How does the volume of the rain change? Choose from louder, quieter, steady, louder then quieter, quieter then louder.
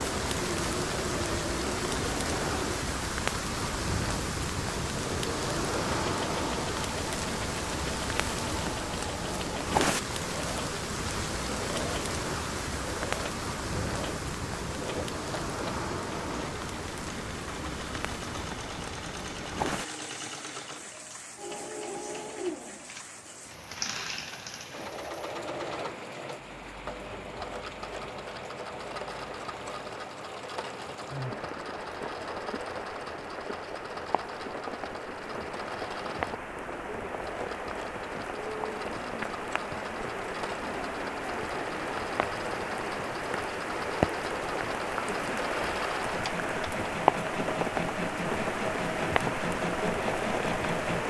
quieter then louder.